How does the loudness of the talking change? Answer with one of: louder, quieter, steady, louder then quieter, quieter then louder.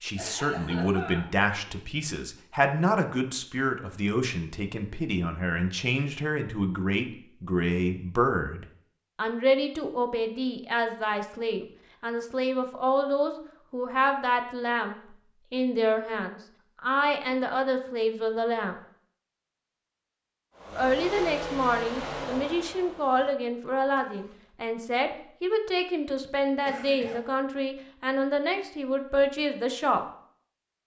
steady.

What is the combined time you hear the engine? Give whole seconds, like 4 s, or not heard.
4 s.